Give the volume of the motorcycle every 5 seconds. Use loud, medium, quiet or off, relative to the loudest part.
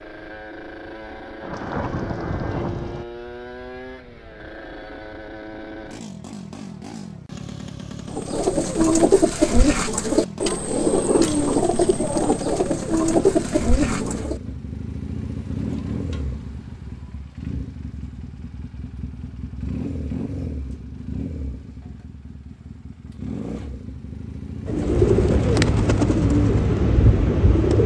medium, loud, loud, loud, loud, off.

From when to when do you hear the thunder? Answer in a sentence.
The thunder can be heard from 1.4 to 3.0 s.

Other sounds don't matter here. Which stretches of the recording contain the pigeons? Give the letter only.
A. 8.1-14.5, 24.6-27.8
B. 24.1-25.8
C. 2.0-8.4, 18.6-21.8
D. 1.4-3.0
A.